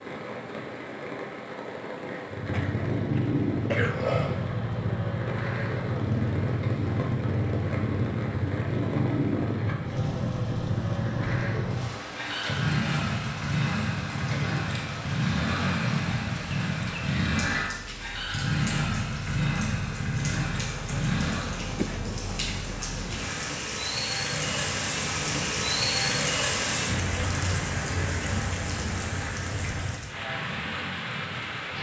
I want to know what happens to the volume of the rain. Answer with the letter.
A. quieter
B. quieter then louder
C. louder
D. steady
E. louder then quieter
C.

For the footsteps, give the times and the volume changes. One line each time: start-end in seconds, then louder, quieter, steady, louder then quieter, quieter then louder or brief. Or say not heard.
not heard.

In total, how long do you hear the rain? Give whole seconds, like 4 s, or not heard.
32 s.